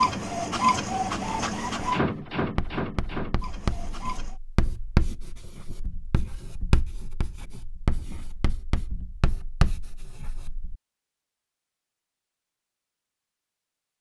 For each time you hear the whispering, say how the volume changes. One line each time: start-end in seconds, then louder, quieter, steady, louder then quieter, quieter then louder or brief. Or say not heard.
not heard.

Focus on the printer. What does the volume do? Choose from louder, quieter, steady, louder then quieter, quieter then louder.
quieter.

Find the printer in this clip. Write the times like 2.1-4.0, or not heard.
0.0-4.4.